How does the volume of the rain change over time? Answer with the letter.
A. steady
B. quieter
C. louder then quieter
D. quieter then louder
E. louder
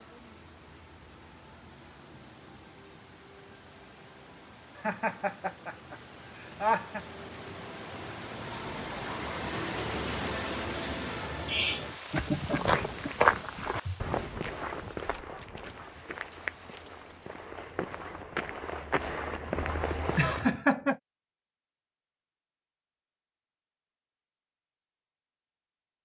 C.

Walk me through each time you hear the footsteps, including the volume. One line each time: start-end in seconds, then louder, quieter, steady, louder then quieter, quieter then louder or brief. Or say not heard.
12.1-20.6 quieter then louder.